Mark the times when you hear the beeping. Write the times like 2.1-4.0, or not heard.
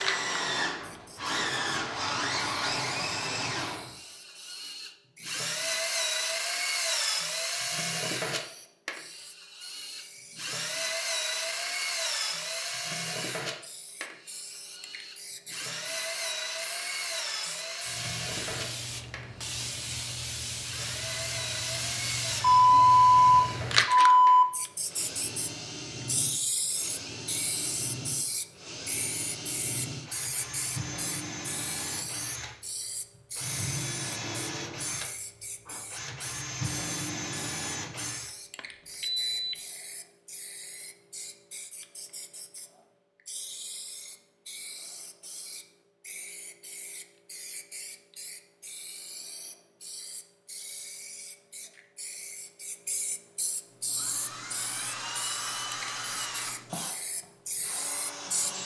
22.4-24.4, 38.5-39.5.